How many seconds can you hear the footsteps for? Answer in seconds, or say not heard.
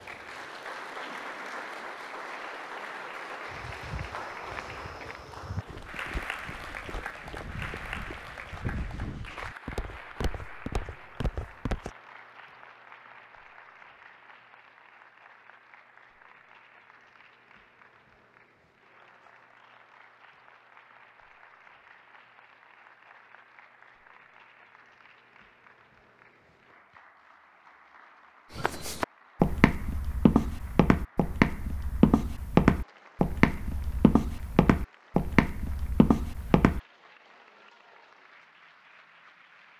17 s.